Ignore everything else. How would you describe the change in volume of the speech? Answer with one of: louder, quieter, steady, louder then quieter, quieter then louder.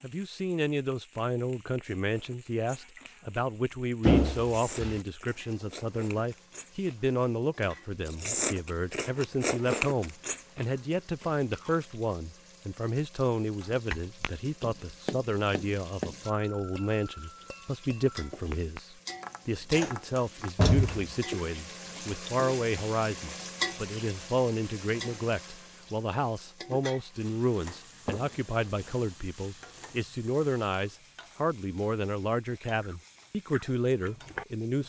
steady.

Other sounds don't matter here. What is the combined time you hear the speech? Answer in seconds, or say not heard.
35 s.